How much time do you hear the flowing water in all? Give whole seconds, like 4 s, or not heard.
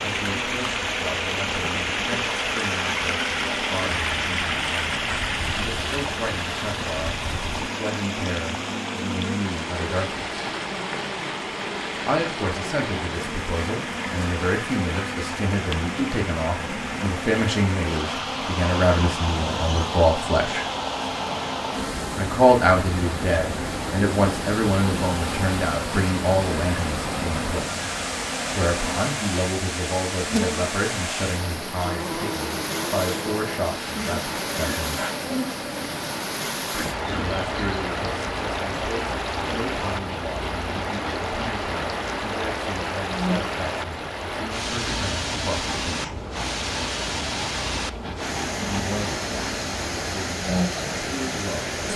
52 s.